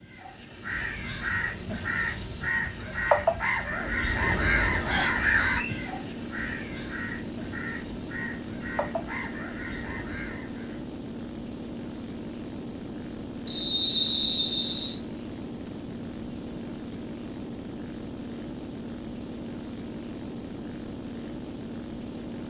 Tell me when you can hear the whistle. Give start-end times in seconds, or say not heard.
4.9-5.8, 13.4-14.9.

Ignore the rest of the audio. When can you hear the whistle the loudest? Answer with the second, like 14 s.
14 s.